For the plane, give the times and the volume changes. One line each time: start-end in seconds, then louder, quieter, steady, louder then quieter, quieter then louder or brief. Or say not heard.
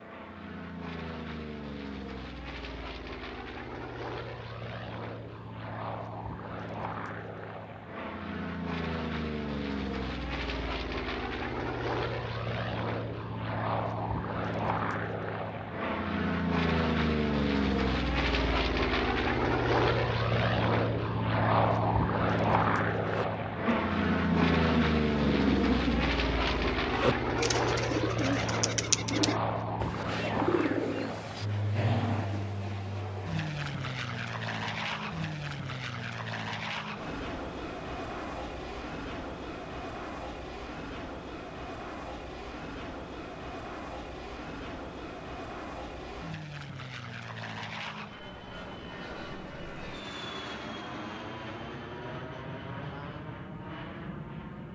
0.0-54.6 louder then quieter.